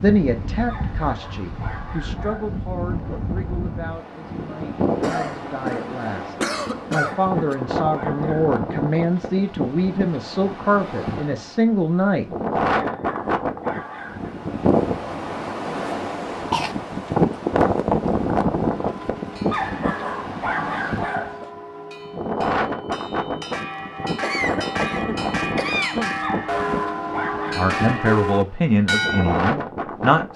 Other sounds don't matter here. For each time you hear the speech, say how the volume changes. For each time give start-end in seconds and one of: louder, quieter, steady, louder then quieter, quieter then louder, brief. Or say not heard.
0.0-12.3 quieter then louder
27.6-30.3 brief.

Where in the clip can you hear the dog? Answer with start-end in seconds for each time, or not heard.
0.7-2.6, 7.0-8.6, 12.8-14.3, 19.5-21.4, 26.2-27.7.